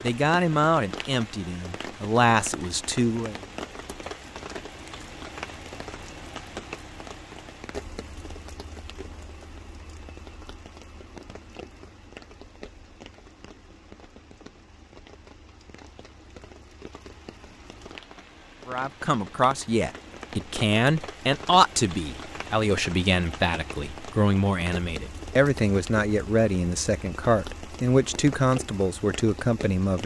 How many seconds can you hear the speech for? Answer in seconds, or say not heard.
15 s.